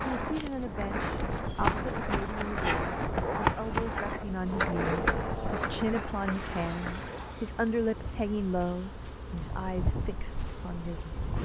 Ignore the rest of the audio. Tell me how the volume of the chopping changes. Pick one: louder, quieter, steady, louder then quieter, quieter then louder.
louder then quieter.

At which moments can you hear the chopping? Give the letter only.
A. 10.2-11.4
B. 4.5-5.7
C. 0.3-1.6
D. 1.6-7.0
D.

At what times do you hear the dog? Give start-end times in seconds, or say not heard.
4.5-5.7.